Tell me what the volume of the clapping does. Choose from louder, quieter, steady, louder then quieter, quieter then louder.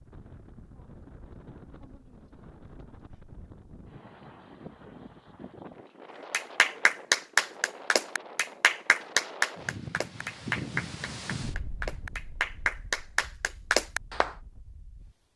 quieter then louder.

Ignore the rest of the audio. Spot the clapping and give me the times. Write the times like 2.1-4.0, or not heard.
6.3-14.3.